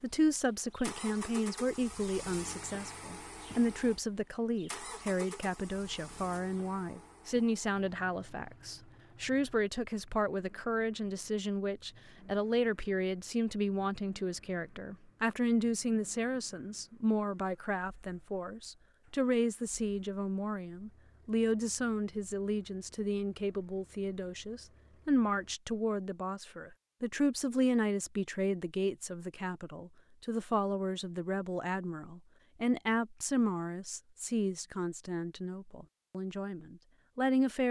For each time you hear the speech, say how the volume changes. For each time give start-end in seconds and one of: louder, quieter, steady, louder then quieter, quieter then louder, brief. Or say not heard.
0.0-37.6 steady.